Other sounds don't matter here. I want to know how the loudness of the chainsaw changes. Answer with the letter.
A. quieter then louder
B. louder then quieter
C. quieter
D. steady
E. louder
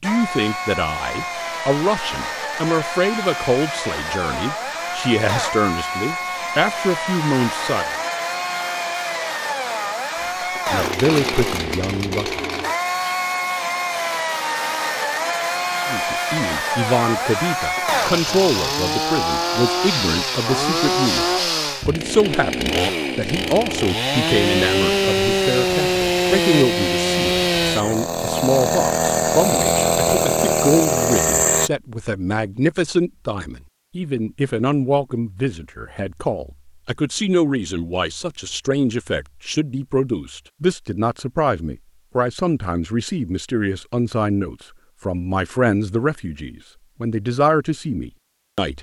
E.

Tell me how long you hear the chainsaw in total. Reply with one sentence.
The chainsaw can be heard for 32 seconds in total.